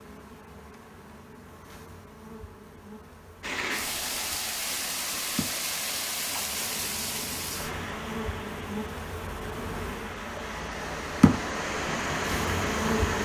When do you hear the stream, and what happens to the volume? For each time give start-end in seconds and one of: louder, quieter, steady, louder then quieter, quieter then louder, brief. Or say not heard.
3.4-13.1 quieter then louder.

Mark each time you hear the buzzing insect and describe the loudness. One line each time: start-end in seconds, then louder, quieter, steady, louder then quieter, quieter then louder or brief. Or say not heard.
0.0-13.1 louder.